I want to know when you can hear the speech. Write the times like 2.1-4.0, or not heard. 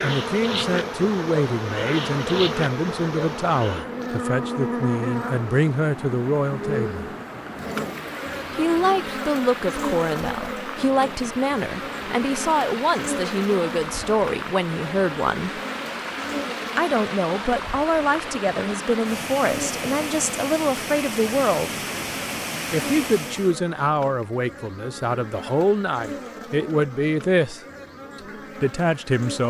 0.0-7.0, 8.5-15.6, 16.8-21.8, 22.7-27.6, 28.6-29.4.